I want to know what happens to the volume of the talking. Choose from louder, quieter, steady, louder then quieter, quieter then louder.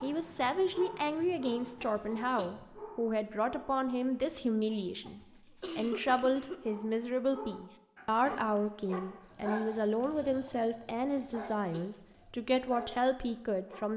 steady.